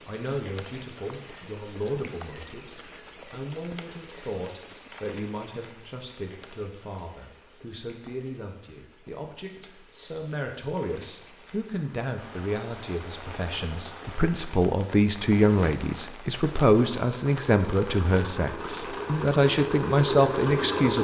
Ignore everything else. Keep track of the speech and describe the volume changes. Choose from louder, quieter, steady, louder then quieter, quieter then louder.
louder.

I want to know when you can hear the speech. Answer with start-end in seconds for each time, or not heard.
0.0-20.9.